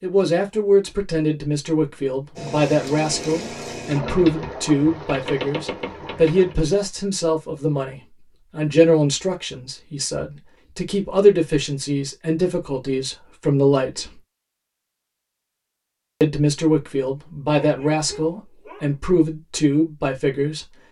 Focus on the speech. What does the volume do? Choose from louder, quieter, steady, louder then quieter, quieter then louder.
steady.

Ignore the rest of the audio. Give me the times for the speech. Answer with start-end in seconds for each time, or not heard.
0.0-14.2, 16.2-20.8.